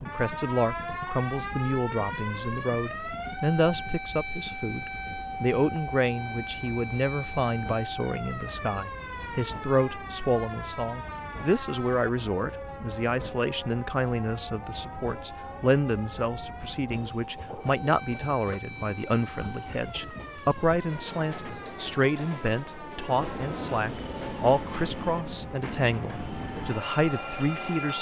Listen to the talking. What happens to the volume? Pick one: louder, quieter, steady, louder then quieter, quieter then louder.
steady.